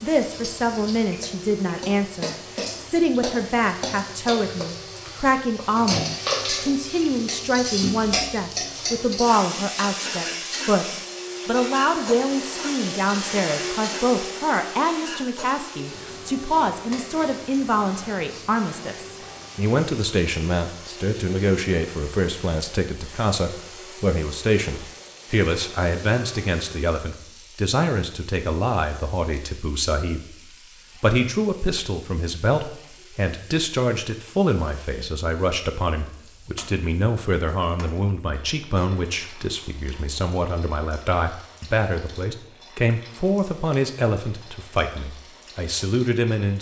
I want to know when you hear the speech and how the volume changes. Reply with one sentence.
The speech can be heard from 0.0 to 10.8 s, at a steady volume; from 11.4 to 30.4 s, at a steady volume; and from 31.0 to 46.5 s, at a steady volume.